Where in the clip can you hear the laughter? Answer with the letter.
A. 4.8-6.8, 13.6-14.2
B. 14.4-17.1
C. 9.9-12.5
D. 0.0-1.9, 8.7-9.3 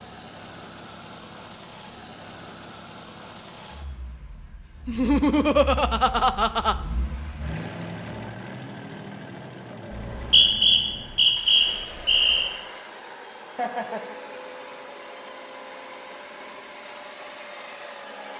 A.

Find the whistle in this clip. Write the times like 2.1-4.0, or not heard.
9.9-12.5.